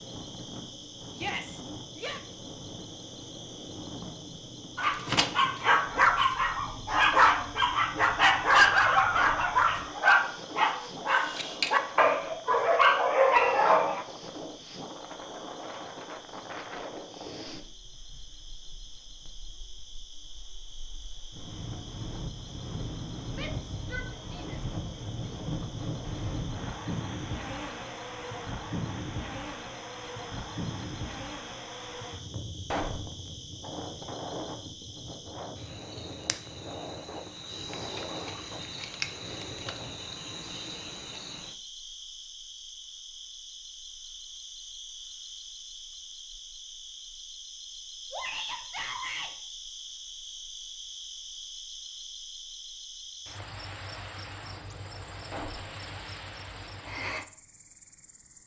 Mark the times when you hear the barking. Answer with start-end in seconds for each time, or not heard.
4.8-14.1.